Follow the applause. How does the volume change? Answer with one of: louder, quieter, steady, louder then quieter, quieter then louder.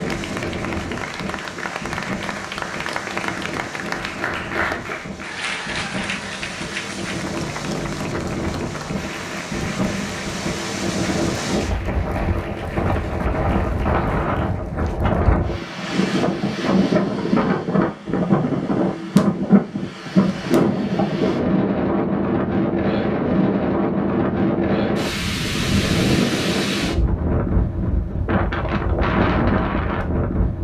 quieter.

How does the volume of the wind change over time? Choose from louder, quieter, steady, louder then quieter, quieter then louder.
louder.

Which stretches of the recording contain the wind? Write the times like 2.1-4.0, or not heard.
0.0-30.6.